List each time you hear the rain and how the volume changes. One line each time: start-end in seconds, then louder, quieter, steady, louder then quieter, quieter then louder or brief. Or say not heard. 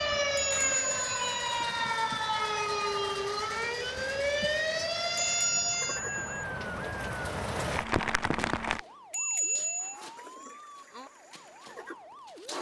0.0-8.8 louder.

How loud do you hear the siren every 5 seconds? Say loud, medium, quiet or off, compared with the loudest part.
loud, medium, quiet.